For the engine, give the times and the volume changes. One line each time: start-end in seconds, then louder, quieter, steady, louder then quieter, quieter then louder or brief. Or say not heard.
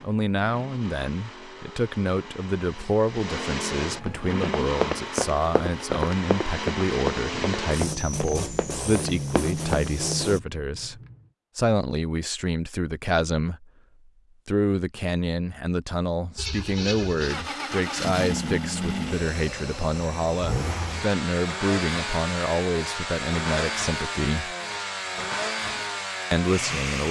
0.0-10.4 louder
16.4-27.0 steady.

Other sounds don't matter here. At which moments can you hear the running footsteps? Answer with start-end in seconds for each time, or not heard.
4.0-10.2.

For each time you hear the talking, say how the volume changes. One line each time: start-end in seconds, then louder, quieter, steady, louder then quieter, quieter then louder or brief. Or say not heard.
0.0-13.7 steady
14.4-24.6 steady
26.3-27.0 brief.